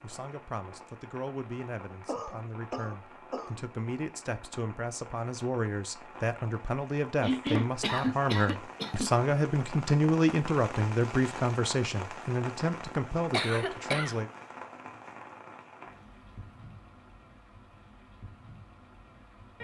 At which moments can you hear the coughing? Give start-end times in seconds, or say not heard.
2.0-3.6, 7.2-9.1, 13.3-14.2.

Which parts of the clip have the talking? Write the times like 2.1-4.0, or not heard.
0.0-14.3.